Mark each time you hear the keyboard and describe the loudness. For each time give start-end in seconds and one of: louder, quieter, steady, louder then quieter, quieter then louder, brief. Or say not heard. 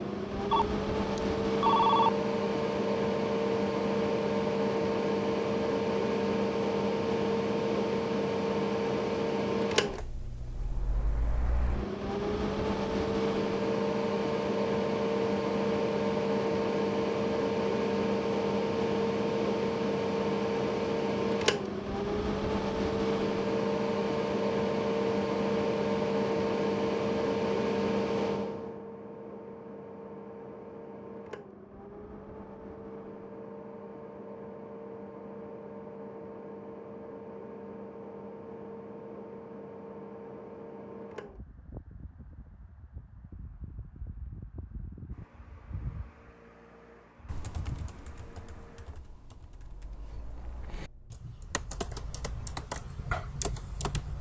47.2-54.1 quieter then louder.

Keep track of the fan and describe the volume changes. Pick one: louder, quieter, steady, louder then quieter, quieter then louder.
quieter.